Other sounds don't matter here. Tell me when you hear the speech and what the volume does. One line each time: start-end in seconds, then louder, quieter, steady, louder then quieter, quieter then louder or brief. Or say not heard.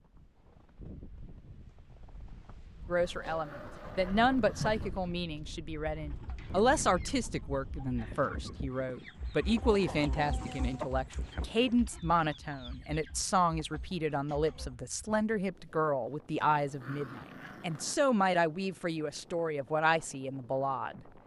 2.9-21.1 steady.